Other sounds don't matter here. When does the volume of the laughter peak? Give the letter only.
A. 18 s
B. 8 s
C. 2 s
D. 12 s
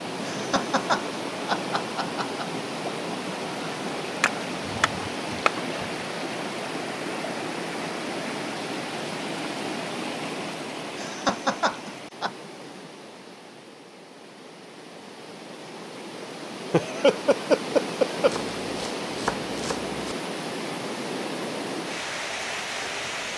A.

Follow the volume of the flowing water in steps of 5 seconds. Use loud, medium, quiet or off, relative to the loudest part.
loud, loud, medium, loud, loud.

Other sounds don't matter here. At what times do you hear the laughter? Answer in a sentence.
You can hear the laughter from 0.2 to 2.5 s, from 10.9 to 12.3 s and from 16.7 to 18.4 s.